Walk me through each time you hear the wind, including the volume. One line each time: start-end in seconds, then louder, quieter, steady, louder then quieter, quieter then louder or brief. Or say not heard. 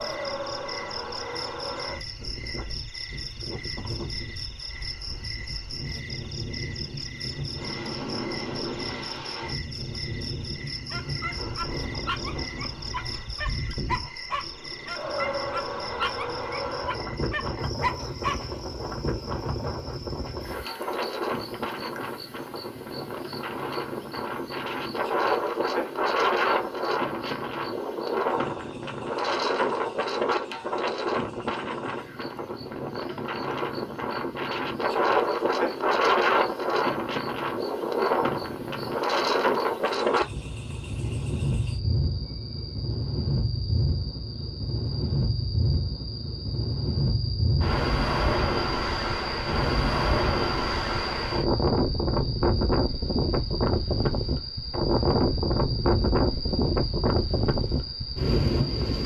0.0-59.0 louder.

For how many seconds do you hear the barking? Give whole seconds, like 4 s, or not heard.
8 s.